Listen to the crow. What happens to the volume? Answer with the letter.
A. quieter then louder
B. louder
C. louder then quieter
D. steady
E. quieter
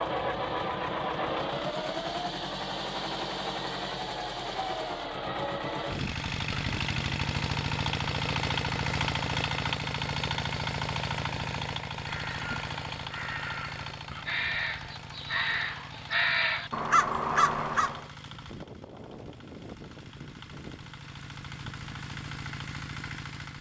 B.